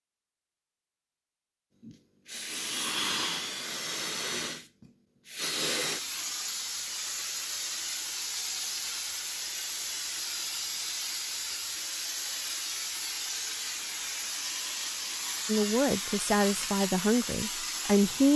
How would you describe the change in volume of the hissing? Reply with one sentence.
The loudness of the hissing stays about the same.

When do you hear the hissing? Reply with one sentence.
The hissing can be heard from 1.8 to 18.3 s.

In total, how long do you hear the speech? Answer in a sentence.
The speech can be heard for 3 seconds in total.